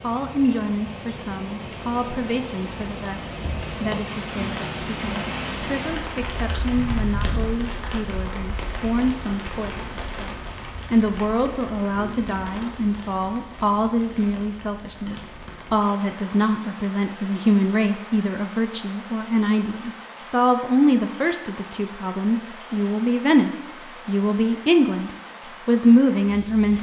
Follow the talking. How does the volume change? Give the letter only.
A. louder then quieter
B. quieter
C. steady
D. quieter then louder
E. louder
E.